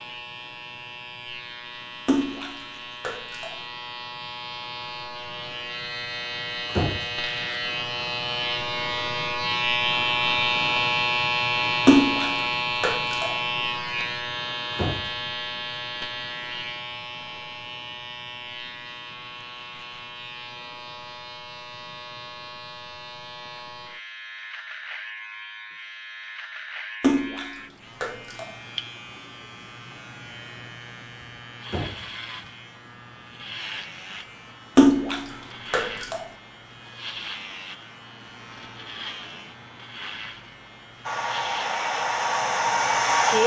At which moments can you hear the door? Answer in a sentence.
The door can be heard from 6.7 to 7.2 s, from 14.7 to 15.2 s and from 31.6 to 32.1 s.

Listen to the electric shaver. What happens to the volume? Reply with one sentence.
The volume of the electric shaver goes up, then down.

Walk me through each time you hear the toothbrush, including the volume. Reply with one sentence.
You can't hear the toothbrush here.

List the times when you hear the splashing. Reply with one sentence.
The splashing can be heard from 2.0 to 3.5 s, from 11.8 to 13.3 s, from 27.0 to 28.5 s and from 34.8 to 36.2 s.